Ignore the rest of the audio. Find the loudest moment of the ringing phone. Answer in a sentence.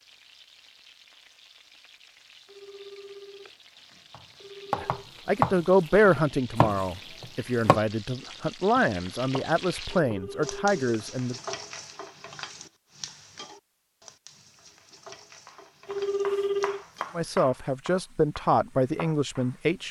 The loudest moment of the ringing phone is at 16 seconds.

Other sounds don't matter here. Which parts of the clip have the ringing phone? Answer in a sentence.
The ringing phone can be heard from 2.5 to 5.0 s, from 10.0 to 10.8 s and from 15.8 to 16.9 s.